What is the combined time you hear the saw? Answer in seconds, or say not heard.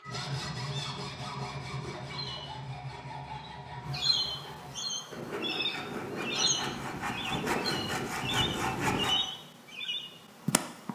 9 s.